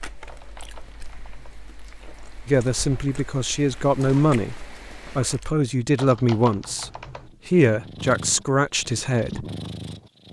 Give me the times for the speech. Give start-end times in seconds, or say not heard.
2.5-4.5, 5.2-9.4.